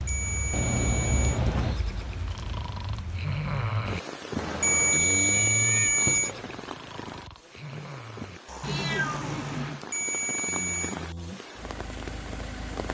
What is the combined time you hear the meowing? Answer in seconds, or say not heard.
4 s.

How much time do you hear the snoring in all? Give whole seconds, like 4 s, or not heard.
11 s.